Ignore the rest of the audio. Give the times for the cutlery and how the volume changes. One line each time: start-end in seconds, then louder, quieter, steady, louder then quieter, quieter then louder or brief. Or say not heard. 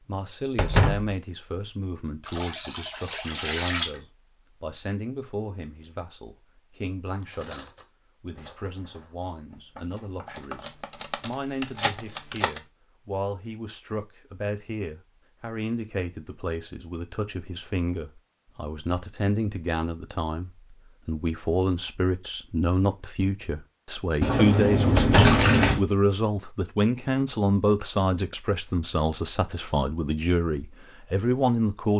7.2-12.6 quieter then louder.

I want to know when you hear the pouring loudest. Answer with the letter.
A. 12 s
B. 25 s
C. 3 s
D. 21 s
B.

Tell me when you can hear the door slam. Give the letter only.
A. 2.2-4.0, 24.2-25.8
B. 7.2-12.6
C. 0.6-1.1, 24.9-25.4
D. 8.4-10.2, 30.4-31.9
C.